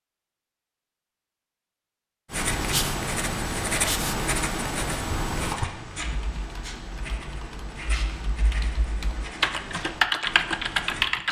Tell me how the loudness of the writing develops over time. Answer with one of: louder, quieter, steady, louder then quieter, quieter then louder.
quieter.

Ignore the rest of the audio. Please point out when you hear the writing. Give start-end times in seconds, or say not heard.
2.3-11.1.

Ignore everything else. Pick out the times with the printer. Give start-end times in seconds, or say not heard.
not heard.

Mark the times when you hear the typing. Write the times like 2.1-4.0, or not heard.
5.3-11.2.